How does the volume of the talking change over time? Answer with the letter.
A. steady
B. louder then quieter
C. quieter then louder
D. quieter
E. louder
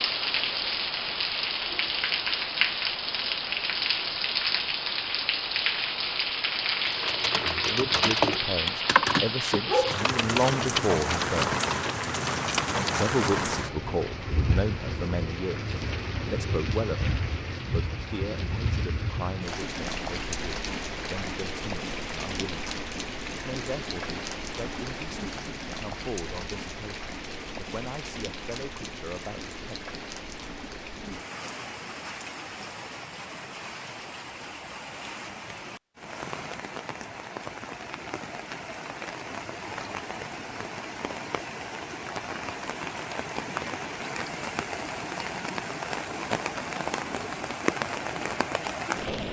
D.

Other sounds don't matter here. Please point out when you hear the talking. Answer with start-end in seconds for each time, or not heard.
7.5-11.6, 12.9-22.6, 23.3-29.8.